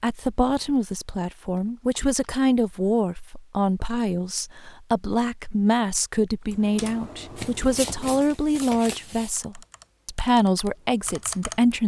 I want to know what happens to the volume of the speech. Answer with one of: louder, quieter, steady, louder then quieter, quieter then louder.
steady.